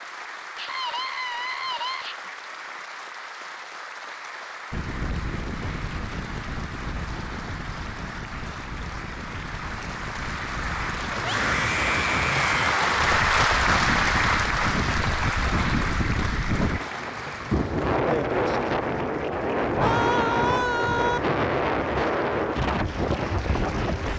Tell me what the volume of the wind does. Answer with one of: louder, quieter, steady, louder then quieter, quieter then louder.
louder.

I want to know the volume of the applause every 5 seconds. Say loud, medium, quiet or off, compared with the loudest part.
quiet, quiet, loud, medium, quiet.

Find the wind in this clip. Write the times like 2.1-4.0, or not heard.
4.7-24.1.